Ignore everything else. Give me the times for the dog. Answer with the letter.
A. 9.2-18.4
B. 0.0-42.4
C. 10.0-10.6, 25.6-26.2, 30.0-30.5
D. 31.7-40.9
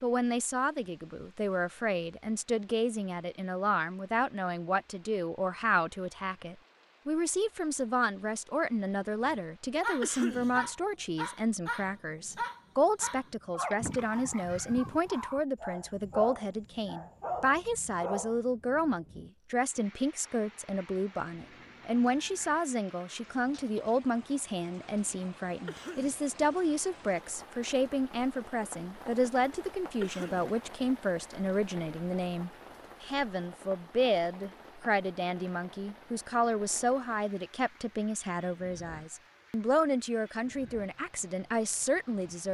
A.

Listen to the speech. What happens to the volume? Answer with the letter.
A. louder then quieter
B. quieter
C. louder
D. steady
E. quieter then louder
D.